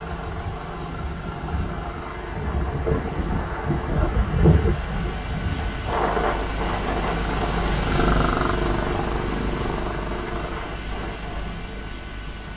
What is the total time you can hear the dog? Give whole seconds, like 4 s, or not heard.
not heard.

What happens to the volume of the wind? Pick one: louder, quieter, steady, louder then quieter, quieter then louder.
louder then quieter.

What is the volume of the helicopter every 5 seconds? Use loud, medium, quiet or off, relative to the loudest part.
medium, loud, medium.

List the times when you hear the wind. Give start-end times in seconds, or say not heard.
0.0-12.5.